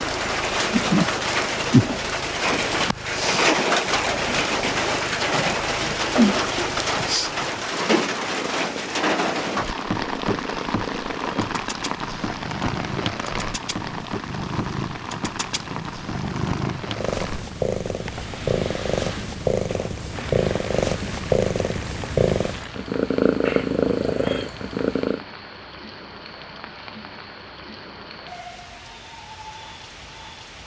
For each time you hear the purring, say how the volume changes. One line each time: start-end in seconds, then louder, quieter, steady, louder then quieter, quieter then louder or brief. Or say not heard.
0.0-25.2 louder.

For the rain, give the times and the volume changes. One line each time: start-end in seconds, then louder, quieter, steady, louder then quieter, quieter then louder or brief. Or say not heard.
0.0-30.6 quieter.